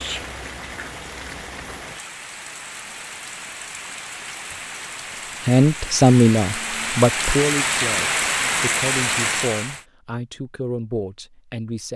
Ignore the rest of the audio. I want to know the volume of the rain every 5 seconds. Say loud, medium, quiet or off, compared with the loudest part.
medium, loud, off.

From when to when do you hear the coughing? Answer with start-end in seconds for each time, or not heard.
not heard.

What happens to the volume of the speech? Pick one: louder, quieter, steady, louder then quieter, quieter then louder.
quieter.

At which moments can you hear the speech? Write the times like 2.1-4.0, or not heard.
5.5-11.9.